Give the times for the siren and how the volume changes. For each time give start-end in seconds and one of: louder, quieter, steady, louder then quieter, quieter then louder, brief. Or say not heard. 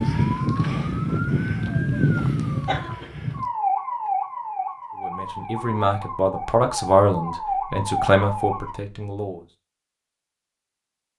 0.0-8.8 quieter then louder.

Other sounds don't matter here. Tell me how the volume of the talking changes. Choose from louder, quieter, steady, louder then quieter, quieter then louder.
louder then quieter.